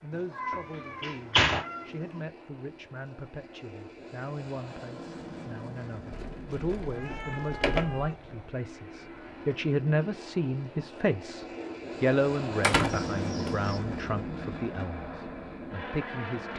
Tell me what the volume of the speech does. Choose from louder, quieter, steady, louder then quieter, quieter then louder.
louder then quieter.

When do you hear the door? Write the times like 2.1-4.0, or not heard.
0.5-1.6, 6.1-8.1, 12.6-13.5.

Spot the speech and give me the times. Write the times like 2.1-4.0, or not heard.
0.0-16.5.